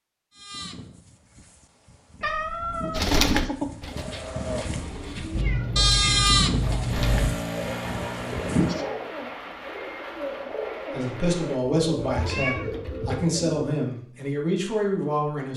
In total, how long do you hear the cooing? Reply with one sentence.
The cooing can be heard for 11 seconds in total.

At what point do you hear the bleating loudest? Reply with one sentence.
The loudest moment of the bleating is at 6 seconds.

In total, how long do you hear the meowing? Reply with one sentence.
The meowing can be heard for 4 seconds in total.